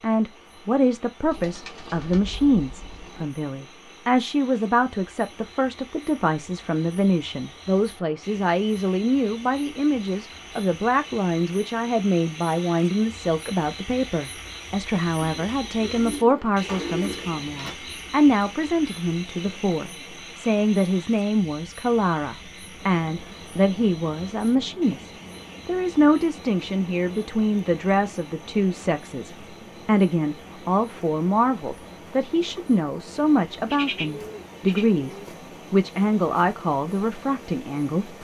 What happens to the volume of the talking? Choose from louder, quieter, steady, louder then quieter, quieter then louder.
steady.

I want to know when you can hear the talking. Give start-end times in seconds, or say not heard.
0.0-38.1.